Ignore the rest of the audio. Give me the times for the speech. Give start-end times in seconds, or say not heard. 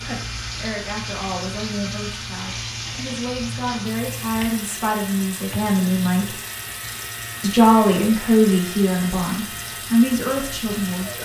0.0-6.3, 7.4-11.2.